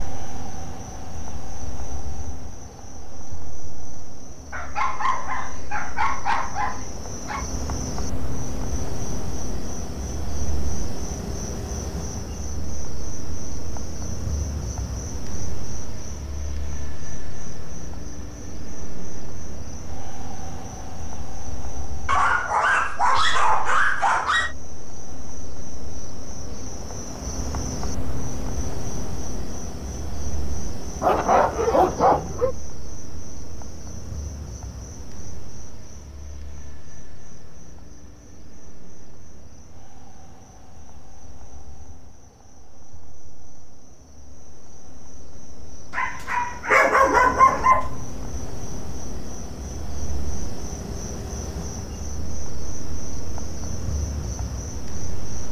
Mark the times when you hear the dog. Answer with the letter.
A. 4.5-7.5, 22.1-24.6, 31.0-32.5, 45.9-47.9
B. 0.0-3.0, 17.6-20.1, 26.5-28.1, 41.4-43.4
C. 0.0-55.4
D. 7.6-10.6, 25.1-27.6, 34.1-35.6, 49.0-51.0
A.